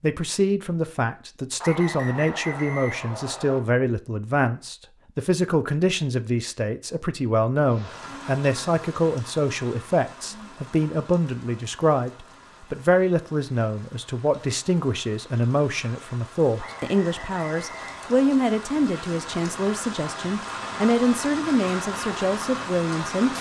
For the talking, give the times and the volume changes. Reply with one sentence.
The talking can be heard from 0.0 to 23.3 s, at a steady volume.